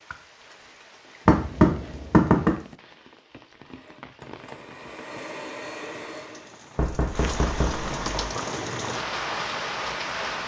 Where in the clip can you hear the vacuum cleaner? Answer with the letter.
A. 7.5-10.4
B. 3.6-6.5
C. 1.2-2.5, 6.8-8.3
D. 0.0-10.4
B.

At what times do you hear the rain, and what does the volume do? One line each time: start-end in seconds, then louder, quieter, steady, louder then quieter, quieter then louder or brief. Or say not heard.
0.0-10.4 louder.